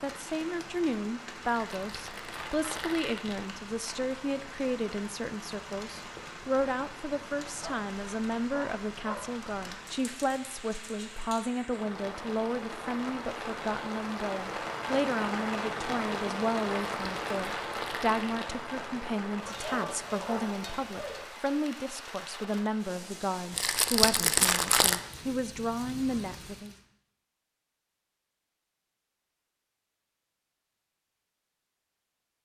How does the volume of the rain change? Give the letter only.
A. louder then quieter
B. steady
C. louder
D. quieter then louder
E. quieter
A.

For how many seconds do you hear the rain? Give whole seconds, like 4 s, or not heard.
27 s.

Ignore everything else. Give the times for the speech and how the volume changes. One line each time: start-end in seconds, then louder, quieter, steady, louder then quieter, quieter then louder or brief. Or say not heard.
0.0-26.8 steady.